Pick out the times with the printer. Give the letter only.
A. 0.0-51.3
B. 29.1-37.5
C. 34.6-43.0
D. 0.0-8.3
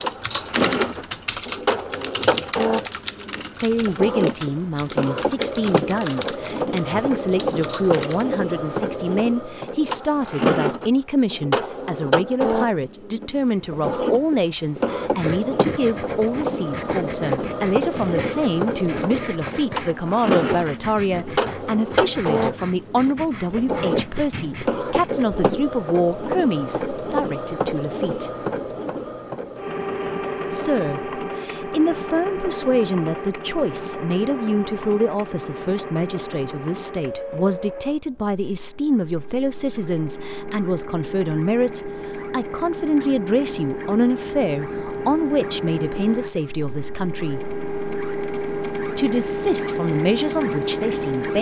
A.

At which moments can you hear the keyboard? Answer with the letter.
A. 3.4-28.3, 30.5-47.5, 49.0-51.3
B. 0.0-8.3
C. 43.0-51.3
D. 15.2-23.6
B.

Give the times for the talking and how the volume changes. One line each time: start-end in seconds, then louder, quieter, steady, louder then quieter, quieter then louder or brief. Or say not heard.
3.4-28.3 steady
30.5-47.5 steady
49.0-51.3 brief.